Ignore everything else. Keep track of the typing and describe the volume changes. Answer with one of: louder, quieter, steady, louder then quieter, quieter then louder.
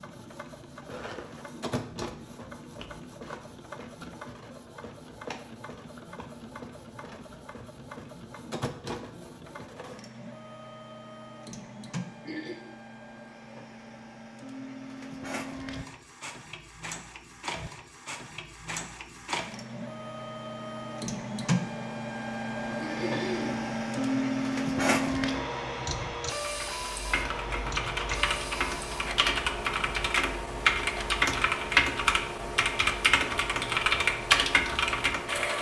louder.